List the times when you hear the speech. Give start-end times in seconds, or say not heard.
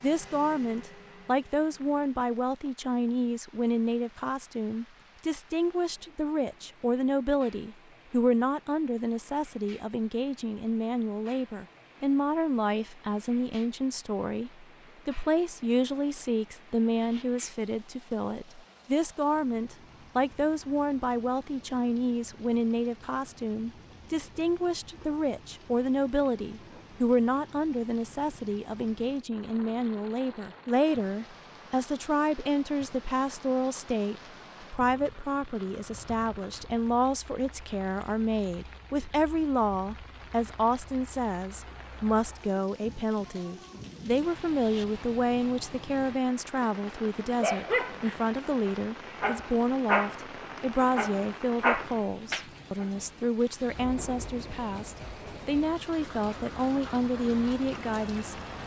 0.0-58.4.